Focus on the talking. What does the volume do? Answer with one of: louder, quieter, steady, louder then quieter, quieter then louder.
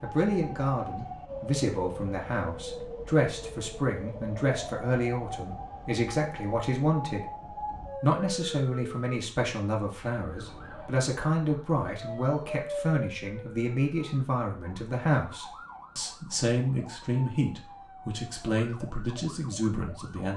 steady.